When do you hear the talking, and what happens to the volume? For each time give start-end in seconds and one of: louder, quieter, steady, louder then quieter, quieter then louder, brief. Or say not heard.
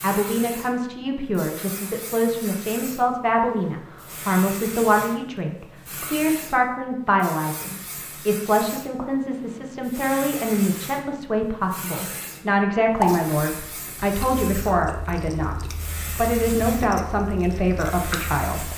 0.0-18.7 steady.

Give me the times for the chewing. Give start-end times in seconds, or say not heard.
12.9-18.7.